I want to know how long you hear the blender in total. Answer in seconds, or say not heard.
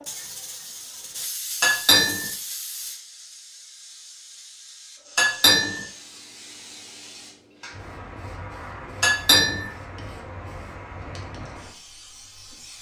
not heard.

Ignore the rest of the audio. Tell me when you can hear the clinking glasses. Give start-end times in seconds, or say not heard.
1.6-2.3, 5.2-5.8, 9.0-9.7.